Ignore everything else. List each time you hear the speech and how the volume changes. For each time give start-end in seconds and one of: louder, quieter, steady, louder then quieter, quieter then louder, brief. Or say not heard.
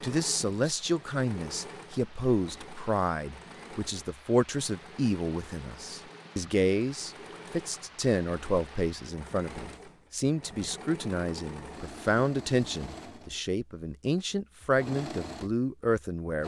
0.0-16.4 steady.